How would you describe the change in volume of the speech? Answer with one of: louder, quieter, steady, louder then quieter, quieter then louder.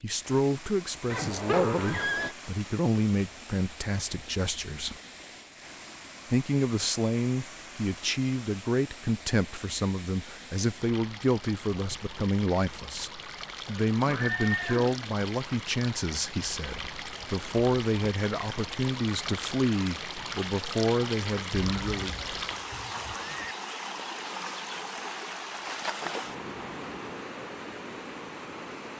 steady.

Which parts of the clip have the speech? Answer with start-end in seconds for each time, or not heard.
0.0-5.0, 6.3-22.1.